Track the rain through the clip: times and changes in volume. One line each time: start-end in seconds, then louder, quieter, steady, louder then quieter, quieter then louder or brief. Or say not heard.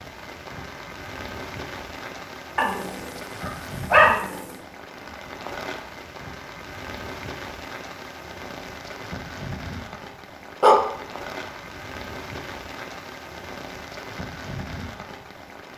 0.0-15.7 steady.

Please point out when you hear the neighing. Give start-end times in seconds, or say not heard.
not heard.